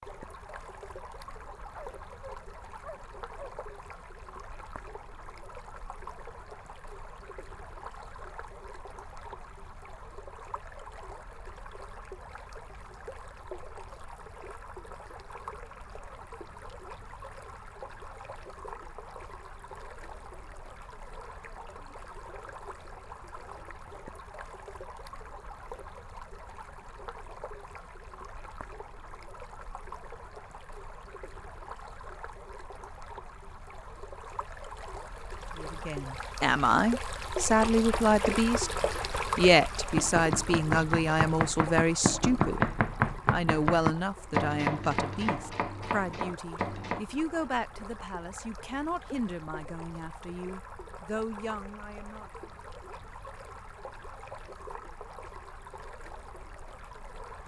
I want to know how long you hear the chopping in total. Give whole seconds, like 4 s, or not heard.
9 s.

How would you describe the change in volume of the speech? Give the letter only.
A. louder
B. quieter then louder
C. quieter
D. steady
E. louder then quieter
C.